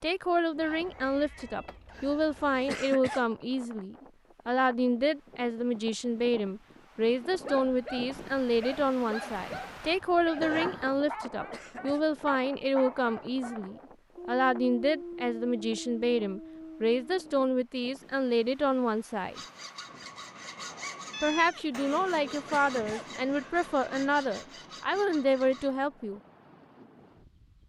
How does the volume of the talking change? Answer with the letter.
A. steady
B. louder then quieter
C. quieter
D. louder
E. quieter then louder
A.